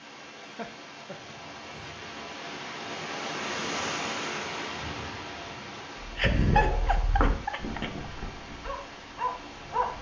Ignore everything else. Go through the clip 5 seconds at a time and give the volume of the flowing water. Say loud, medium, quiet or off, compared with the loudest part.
loud, medium.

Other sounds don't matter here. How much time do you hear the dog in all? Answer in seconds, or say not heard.
4 s.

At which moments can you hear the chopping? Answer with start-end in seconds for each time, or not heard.
not heard.